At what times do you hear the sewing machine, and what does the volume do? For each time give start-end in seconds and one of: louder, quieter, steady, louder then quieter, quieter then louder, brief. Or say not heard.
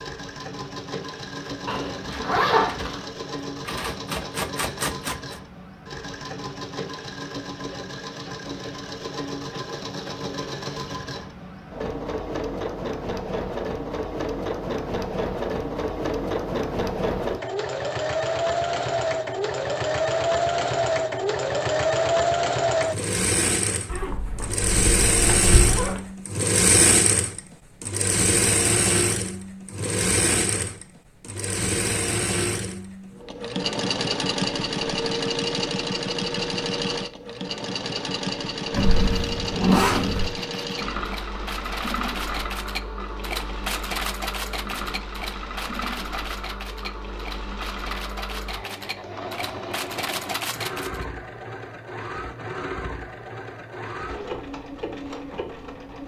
0.0-56.0 louder then quieter.